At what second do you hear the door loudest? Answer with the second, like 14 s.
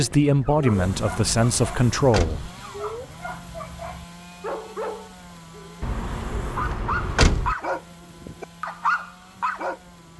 7 s.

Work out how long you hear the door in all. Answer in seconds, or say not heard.
3 s.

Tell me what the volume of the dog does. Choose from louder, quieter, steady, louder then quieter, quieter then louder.
louder.